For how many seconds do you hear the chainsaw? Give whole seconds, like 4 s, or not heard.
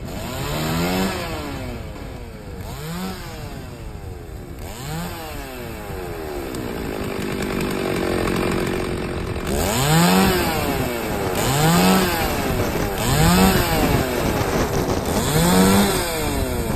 17 s.